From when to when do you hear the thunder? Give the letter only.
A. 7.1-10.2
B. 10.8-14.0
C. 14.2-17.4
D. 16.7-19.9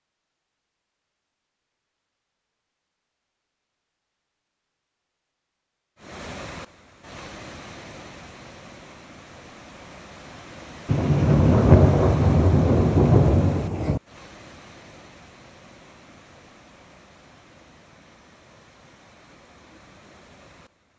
B.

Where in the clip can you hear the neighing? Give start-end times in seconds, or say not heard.
not heard.